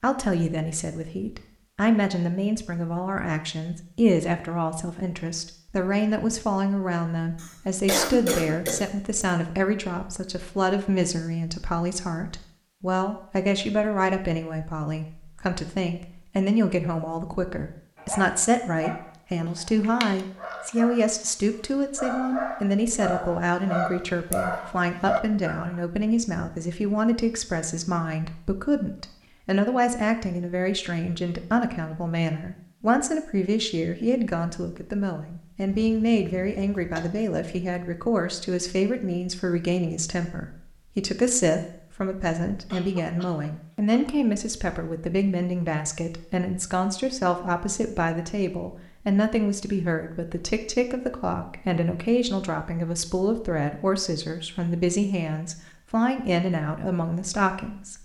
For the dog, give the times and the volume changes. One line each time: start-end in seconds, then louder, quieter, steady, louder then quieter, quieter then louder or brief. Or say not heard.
17.9-25.8 louder.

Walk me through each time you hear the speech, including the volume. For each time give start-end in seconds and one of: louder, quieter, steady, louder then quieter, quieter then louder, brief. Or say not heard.
0.0-58.0 steady.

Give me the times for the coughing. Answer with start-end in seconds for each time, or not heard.
7.4-8.8, 35.8-37.1, 42.7-44.0.